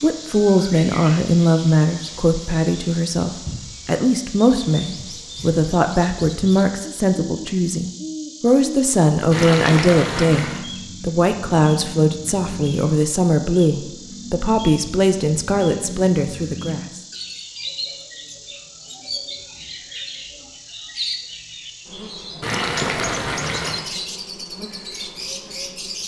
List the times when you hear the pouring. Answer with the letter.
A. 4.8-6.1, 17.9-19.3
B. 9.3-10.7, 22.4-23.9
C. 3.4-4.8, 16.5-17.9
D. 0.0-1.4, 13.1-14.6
B.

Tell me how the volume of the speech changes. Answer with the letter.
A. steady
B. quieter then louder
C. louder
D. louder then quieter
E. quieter
A.